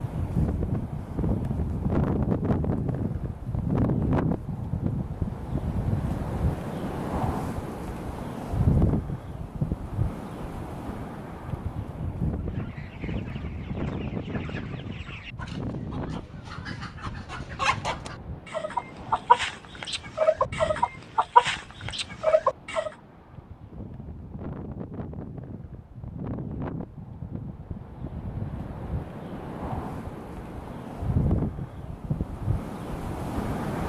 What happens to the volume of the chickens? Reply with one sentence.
The loudness of the chickens goes up.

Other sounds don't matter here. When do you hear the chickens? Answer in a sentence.
The chickens can be heard from 12.3 to 22.9 s.